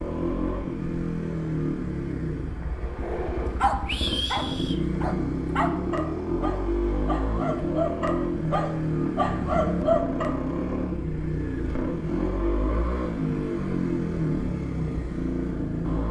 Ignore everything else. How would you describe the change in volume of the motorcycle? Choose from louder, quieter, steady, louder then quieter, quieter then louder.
steady.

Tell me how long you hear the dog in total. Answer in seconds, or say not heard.
7 s.